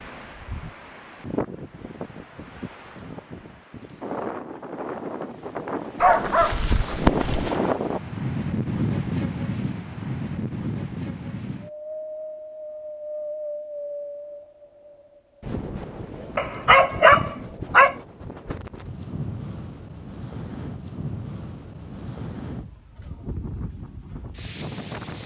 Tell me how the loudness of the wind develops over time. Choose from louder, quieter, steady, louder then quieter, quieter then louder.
louder then quieter.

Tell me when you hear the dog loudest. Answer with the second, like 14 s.
17 s.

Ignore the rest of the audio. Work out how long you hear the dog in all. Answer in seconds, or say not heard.
3 s.